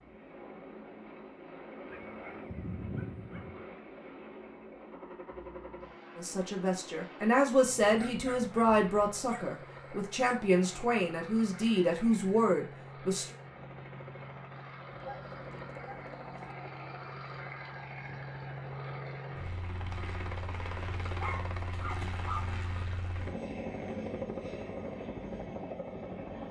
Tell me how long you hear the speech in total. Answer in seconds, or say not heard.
7 s.